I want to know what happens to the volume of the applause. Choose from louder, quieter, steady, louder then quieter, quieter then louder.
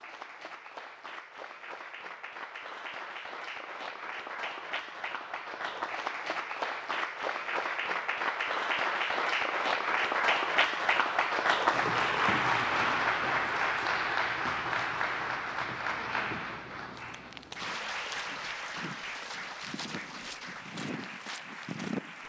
louder then quieter.